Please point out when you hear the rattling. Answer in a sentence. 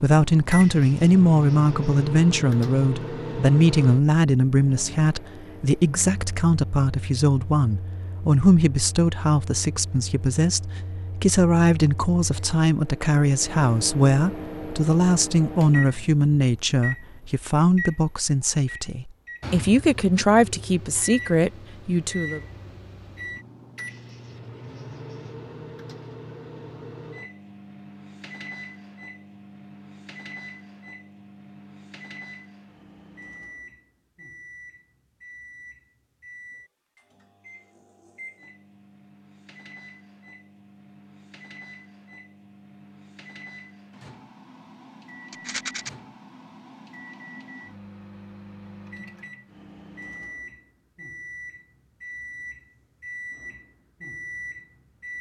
The rattling can be heard from 45.3 to 45.9 s.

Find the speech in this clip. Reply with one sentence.
The speech can be heard from 0.0 to 22.4 s.